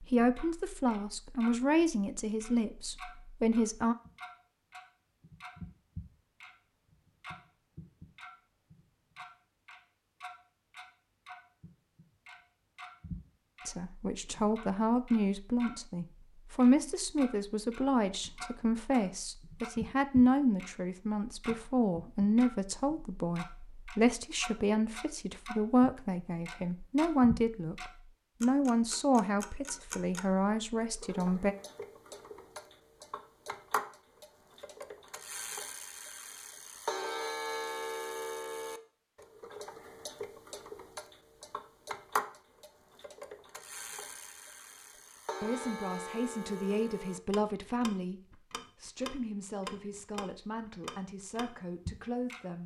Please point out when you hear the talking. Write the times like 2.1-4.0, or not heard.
0.0-4.0, 13.7-31.6, 45.4-52.6.